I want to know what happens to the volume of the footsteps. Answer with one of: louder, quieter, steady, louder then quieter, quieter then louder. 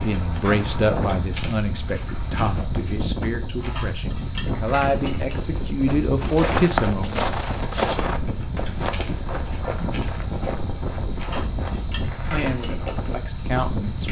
quieter.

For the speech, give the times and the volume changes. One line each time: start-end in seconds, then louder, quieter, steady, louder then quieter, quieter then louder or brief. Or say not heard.
0.0-7.2 quieter then louder
12.3-14.0 brief.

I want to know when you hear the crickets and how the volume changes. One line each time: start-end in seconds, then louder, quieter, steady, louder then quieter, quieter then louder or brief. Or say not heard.
0.0-14.0 steady.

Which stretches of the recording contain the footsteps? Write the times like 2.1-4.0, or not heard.
6.2-13.2.